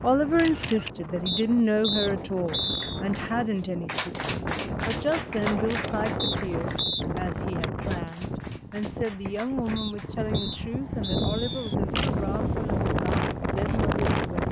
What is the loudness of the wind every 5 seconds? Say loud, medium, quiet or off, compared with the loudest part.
medium, medium, loud.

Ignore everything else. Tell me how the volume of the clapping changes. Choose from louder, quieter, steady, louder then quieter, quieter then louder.
quieter.